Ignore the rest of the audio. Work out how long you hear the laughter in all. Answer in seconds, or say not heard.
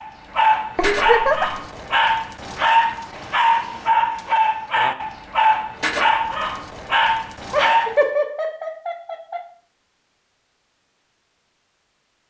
3 s.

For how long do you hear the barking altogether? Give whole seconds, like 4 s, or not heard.
8 s.